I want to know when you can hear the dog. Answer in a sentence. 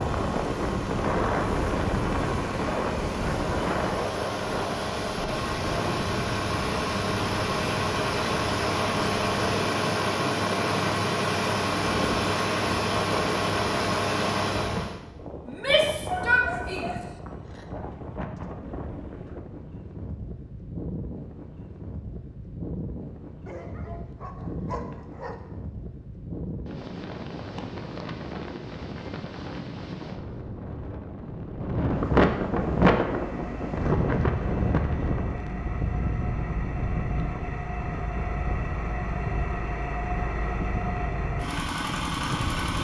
The dog can be heard from 16.1 to 17.6 s and from 23.4 to 25.4 s.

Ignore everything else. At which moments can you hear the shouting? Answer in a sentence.
You can hear the shouting from 15.4 to 16.9 s.